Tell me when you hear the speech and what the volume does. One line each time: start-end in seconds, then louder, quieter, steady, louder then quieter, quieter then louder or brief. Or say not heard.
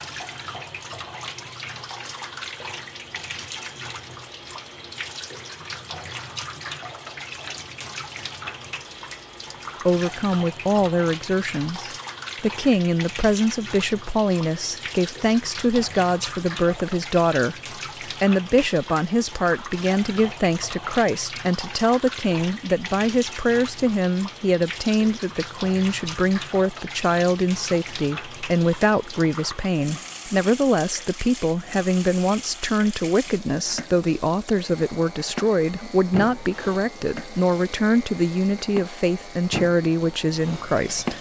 9.8-41.1 steady.